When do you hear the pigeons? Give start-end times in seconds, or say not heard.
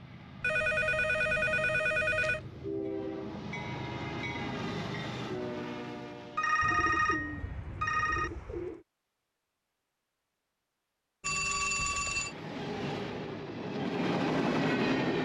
6.6-8.8.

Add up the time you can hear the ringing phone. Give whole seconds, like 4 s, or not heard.
5 s.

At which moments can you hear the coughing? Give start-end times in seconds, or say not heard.
not heard.